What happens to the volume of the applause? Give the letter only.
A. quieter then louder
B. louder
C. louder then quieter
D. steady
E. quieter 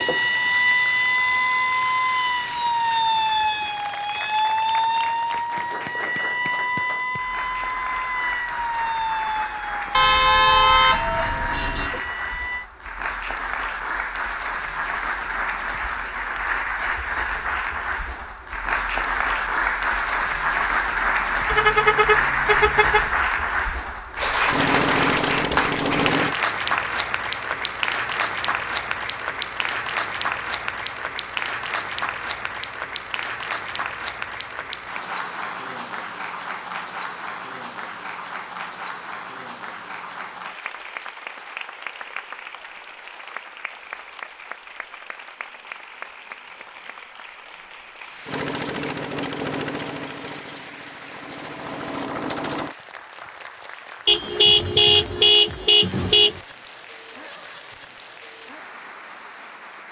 C.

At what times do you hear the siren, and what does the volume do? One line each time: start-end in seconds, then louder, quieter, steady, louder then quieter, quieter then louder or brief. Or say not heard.
0.0-12.7 quieter.